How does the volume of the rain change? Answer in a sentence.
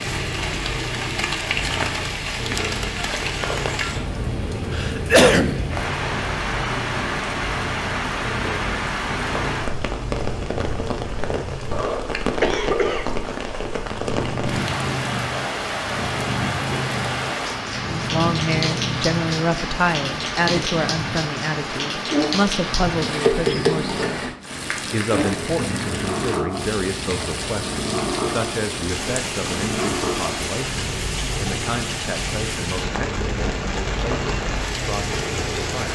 The volume of the rain stays about the same.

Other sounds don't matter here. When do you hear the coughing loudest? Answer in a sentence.
The loudest moment of the coughing is at 5 seconds.